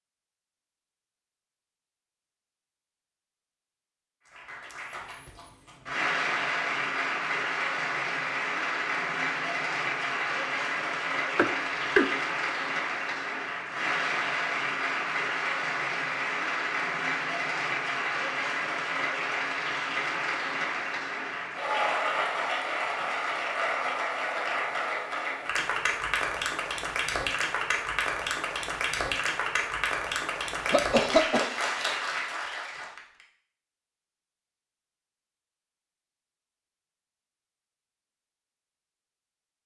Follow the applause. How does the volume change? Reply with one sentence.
The loudness of the applause stays about the same.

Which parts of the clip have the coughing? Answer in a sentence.
You can hear the coughing from 11.3 to 12.1 s and from 30.6 to 31.4 s.